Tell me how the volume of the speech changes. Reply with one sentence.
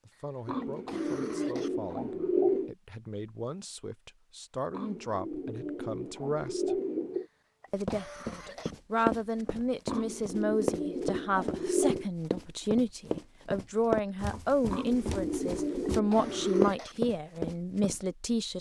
The loudness of the speech goes up.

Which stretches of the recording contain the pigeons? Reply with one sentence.
You can hear the pigeons from 0.5 to 2.8 s, from 4.7 to 7.2 s, from 9.8 to 12.1 s and from 14.7 to 16.7 s.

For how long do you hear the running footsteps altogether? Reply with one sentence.
The running footsteps can be heard for 10 seconds in total.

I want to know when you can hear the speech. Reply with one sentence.
The speech can be heard from 0.1 to 6.8 s and from 7.7 to 18.5 s.